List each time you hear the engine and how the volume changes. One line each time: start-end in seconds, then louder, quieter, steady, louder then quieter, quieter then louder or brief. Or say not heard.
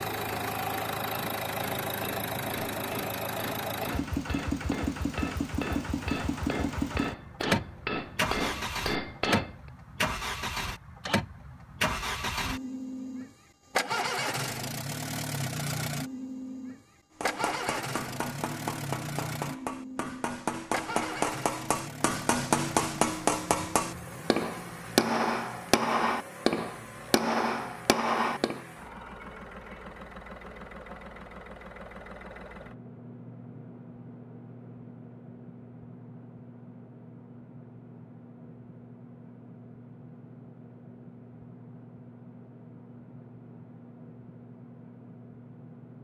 0.0-46.0 quieter.